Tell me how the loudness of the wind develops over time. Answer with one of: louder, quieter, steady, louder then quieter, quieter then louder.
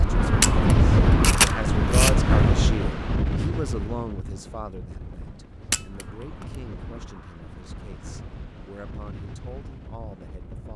quieter.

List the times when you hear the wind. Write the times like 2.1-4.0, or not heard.
0.0-10.7.